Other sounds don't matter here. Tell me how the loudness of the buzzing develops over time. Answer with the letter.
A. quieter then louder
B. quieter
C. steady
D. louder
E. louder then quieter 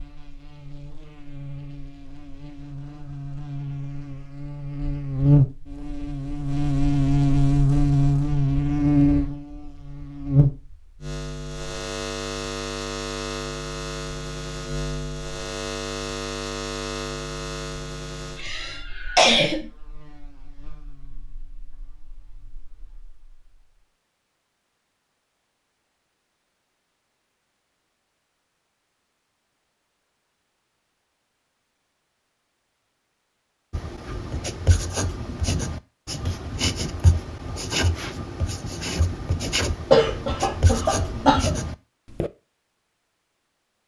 E.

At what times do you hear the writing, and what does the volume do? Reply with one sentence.
You can hear the writing from 33.7 to 42.3 s, at a steady volume.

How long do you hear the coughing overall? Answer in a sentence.
The coughing can be heard for 3 seconds in total.